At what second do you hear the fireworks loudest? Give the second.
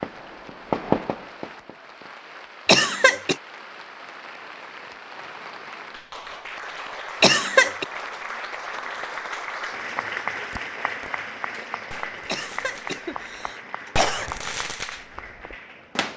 1 s.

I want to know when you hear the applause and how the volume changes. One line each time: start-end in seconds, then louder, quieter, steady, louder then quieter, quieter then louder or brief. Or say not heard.
0.0-16.1 louder then quieter.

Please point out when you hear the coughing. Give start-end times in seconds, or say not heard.
2.6-3.4, 7.2-7.8, 12.2-14.3.